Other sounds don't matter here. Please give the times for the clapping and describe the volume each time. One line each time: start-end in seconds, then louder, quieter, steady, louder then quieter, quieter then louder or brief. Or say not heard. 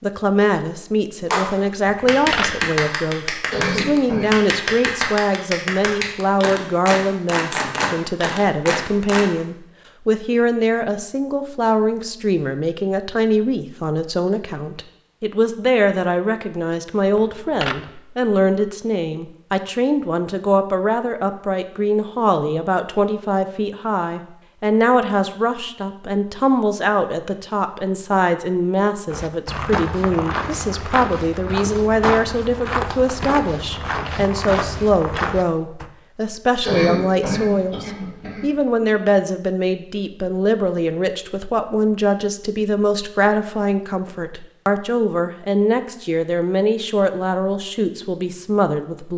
1.3-9.2 steady.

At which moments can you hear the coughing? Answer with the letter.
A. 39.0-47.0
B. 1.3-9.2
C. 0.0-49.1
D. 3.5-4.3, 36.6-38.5
D.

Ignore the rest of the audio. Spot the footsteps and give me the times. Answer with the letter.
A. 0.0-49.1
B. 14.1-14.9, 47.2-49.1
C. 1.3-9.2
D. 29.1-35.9
D.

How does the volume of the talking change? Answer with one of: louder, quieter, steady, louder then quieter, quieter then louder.
steady.